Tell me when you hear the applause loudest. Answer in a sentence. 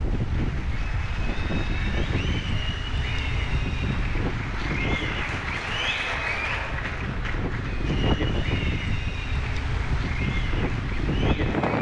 The loudest moment of the applause is at 6 seconds.